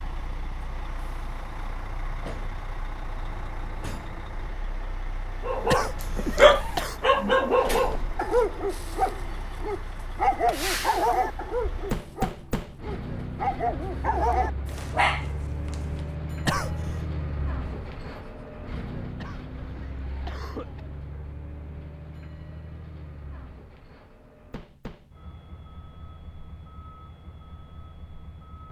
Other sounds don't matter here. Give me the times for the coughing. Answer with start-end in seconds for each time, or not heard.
5.7-7.0, 16.4-17.1, 19.1-20.9.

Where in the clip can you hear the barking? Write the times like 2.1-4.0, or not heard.
5.5-16.0.